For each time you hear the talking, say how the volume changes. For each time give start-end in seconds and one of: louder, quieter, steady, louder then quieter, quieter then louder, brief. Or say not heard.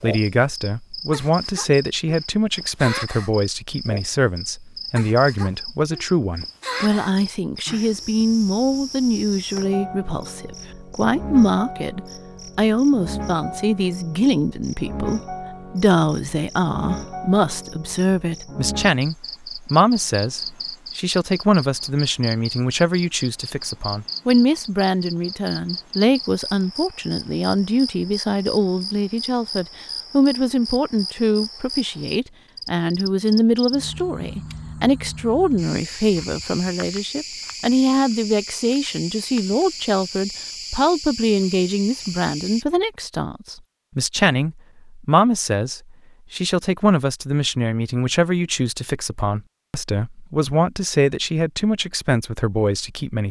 0.0-53.2 steady.